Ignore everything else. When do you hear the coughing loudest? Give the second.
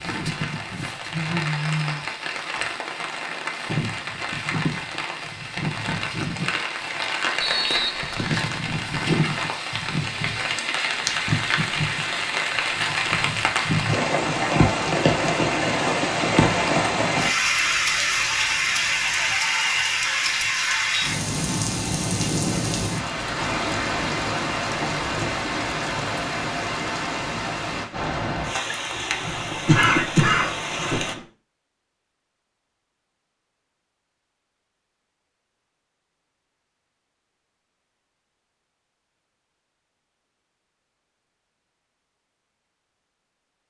30 s.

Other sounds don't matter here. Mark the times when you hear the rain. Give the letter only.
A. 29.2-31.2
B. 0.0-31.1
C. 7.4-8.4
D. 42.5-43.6
B.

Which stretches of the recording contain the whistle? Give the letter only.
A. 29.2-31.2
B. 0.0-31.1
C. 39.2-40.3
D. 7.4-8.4
D.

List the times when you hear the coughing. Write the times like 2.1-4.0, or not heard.
29.2-31.2.